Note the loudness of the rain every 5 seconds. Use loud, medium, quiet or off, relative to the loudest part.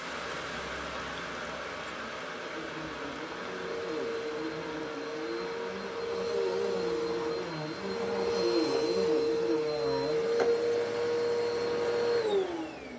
loud, medium, off.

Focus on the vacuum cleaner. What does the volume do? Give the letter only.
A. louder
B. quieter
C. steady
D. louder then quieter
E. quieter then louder
A.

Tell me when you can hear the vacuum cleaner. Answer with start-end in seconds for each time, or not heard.
2.4-12.9.